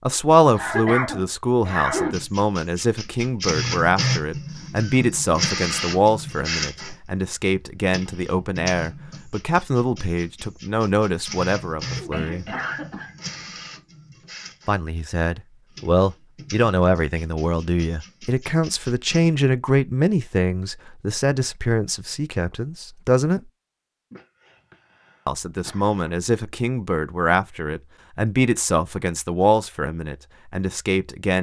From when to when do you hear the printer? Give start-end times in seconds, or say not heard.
1.9-19.3.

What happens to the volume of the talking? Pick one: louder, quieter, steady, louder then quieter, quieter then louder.
steady.